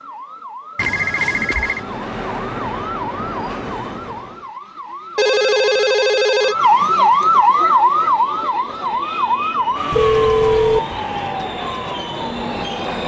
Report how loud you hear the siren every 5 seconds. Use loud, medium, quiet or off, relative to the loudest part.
quiet, loud, medium.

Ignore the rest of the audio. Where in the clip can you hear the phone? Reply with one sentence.
The phone can be heard from 0.8 to 1.8 s, from 5.2 to 6.5 s and from 9.9 to 10.8 s.